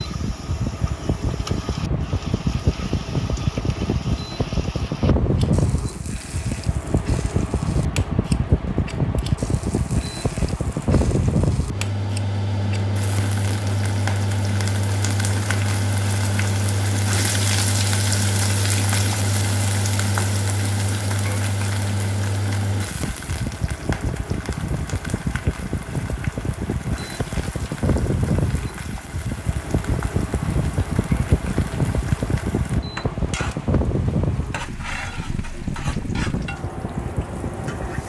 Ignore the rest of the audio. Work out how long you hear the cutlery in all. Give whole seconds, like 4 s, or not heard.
not heard.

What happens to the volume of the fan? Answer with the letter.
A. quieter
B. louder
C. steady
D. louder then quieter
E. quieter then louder
C.